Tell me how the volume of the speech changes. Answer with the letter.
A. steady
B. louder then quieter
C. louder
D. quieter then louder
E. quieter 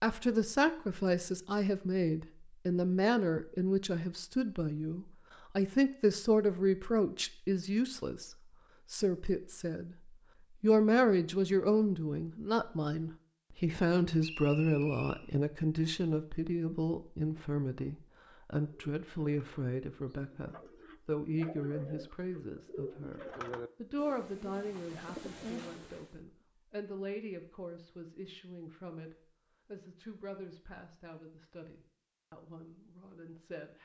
E.